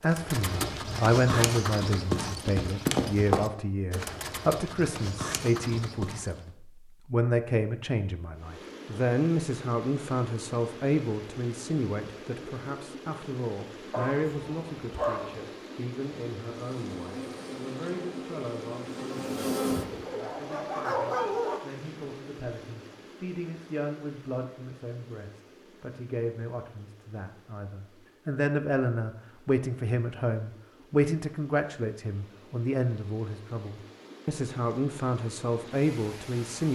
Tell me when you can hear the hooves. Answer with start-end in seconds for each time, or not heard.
0.1-6.5.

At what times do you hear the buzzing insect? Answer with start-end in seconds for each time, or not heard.
16.6-20.1.